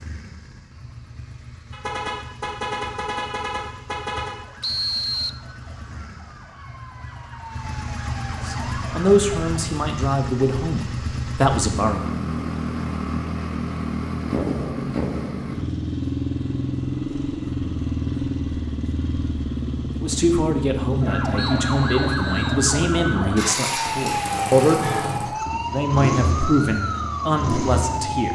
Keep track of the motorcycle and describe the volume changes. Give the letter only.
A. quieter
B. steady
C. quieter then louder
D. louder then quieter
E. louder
E.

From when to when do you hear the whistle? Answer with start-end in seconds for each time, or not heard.
4.6-5.3, 21.4-22.6.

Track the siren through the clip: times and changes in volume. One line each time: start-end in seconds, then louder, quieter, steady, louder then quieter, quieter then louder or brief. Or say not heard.
4.3-9.7 louder
21.0-28.2 steady.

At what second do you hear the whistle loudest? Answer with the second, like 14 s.
5 s.